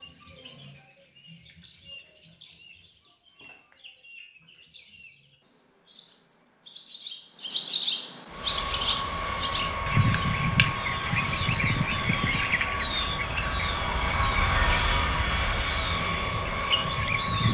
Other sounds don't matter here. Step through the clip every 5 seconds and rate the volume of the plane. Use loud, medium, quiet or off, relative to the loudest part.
off, loud, loud, loud.